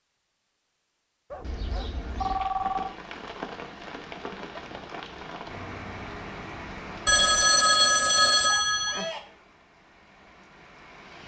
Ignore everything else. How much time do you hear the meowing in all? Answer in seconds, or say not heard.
2 s.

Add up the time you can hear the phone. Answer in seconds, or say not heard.
4 s.